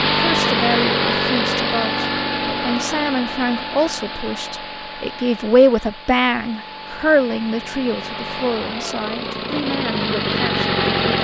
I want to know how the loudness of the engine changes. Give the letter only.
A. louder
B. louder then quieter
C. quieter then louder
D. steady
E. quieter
C.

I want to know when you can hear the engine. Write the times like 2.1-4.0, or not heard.
0.0-11.1.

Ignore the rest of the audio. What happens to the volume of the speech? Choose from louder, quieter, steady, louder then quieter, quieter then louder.
louder then quieter.